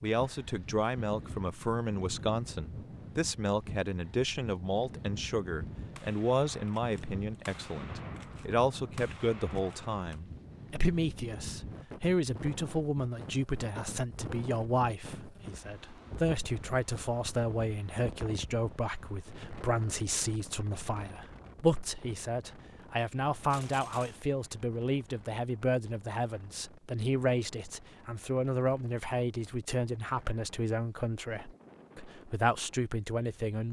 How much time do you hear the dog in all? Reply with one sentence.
You can't hear the dog here.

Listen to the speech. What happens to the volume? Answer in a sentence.
The volume of the speech stays about the same.